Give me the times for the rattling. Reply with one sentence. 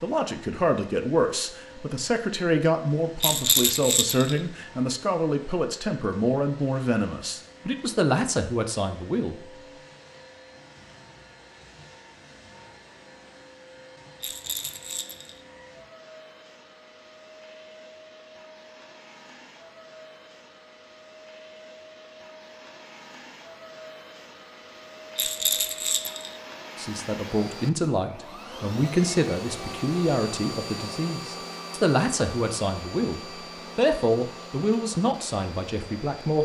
You can hear the rattling from 3.2 to 4.4 s, from 14.2 to 15.4 s and from 25.1 to 26.4 s.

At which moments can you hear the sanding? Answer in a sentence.
The sanding can't be heard in this clip.